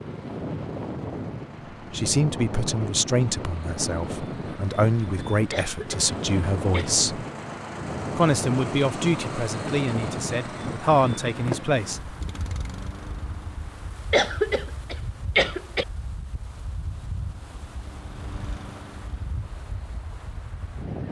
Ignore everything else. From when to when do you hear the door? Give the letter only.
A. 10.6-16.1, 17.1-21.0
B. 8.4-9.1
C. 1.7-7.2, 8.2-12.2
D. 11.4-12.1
D.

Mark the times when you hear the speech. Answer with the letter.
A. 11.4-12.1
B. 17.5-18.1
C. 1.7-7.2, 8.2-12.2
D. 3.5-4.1
C.